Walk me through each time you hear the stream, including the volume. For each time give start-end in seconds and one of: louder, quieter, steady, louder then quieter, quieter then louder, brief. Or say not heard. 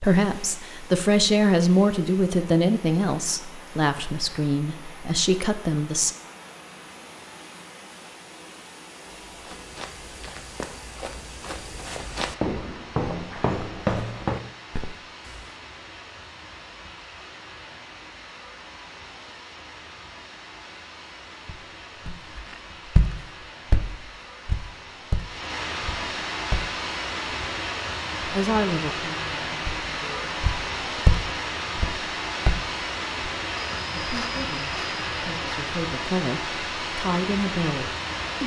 0.0-38.4 louder.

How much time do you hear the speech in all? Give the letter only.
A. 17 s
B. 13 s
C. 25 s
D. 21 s
B.